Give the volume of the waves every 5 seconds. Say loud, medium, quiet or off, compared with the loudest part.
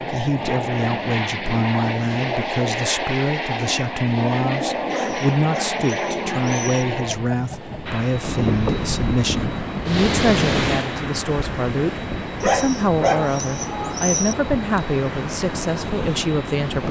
off, loud, loud, loud.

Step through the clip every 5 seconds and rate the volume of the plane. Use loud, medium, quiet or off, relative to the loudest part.
loud, loud, quiet, quiet.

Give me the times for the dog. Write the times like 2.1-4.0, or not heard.
4.9-6.8, 12.4-14.3.